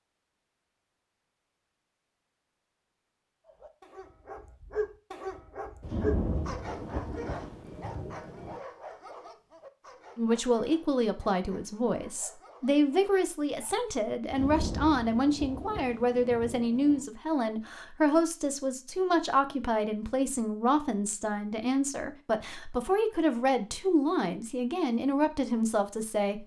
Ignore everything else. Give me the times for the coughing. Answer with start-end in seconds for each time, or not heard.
not heard.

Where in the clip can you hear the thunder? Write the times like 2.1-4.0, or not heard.
5.8-8.6, 14.3-17.1.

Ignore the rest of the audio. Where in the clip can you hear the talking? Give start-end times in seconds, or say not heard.
10.2-26.4.